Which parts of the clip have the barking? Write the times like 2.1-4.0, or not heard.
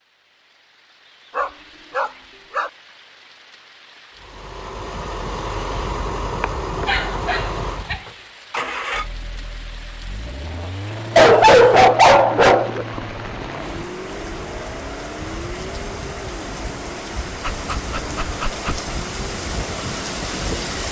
1.3-2.7, 5.8-8.0, 11.2-12.8, 17.4-18.9.